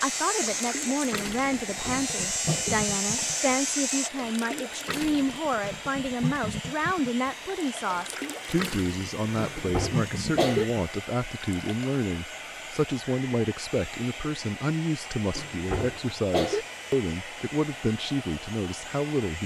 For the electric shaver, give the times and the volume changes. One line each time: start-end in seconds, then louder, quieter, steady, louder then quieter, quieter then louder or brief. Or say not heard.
0.0-4.1 quieter then louder.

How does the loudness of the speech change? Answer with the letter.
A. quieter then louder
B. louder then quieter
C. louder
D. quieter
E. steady
E.